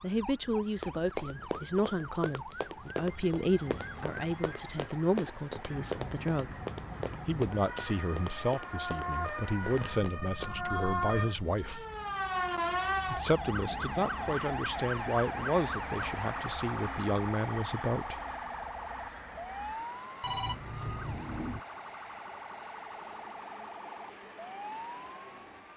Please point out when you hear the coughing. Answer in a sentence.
The coughing can't be heard in this clip.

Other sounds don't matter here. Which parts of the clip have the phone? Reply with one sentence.
You can hear the phone from 2.8 to 4.6 s, from 9.6 to 11.3 s and from 20.2 to 21.6 s.